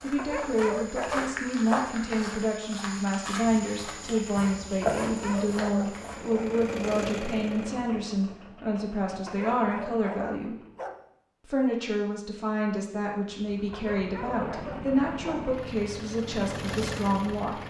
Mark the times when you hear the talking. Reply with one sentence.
You can hear the talking from 0.0 to 10.6 s and from 11.4 to 17.6 s.